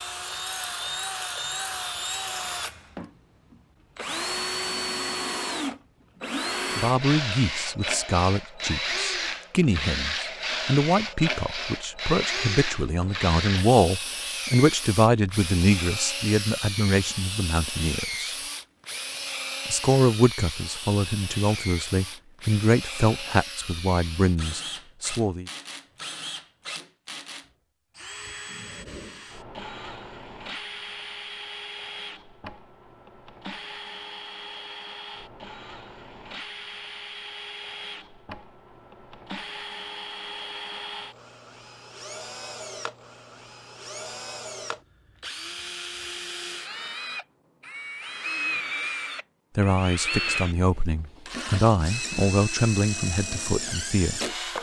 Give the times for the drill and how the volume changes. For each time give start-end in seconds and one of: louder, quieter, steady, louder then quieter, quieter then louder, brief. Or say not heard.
0.0-54.5 quieter then louder.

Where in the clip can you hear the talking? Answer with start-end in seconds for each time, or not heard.
6.8-18.2, 19.6-25.4, 49.5-54.2.